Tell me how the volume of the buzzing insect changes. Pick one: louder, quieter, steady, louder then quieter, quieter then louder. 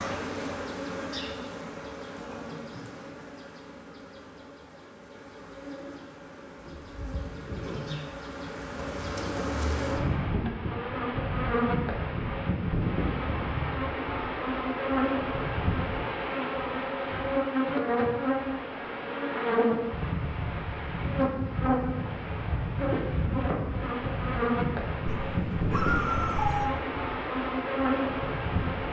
louder.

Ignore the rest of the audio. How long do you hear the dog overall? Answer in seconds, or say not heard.
2 s.